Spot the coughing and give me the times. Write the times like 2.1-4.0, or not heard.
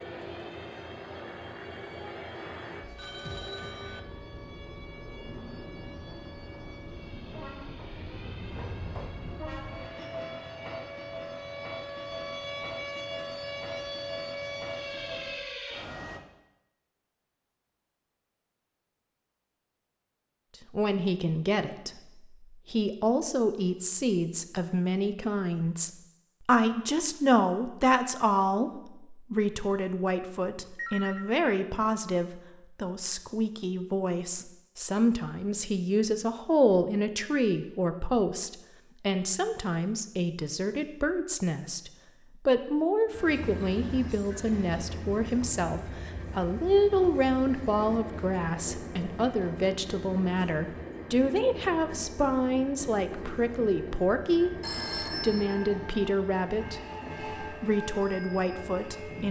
not heard.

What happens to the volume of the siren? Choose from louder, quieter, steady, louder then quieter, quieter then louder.
louder.